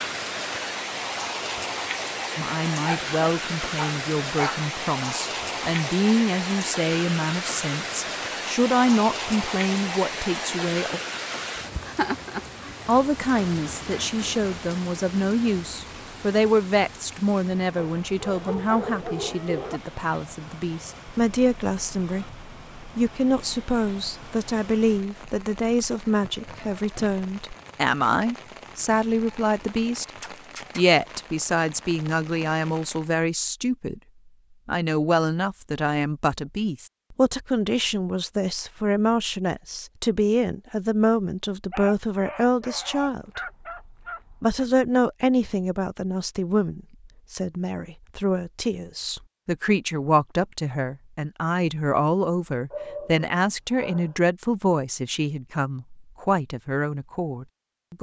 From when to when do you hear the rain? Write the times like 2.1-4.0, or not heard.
0.0-33.1.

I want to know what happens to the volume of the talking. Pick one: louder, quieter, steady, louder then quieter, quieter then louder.
steady.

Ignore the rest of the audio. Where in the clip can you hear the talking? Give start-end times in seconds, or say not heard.
2.4-11.0, 12.8-30.1, 30.8-34.0, 34.6-43.4, 44.3-57.9.